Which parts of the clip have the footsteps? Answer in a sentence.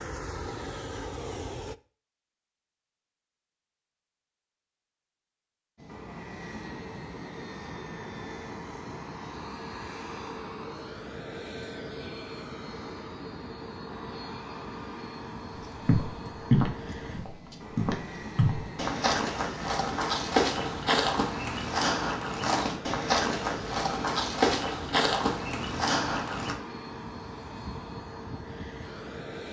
You can hear the footsteps from 15.6 to 26.6 s.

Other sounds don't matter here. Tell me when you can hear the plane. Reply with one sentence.
The plane can be heard from 0.0 to 1.8 s and from 5.8 to 29.4 s.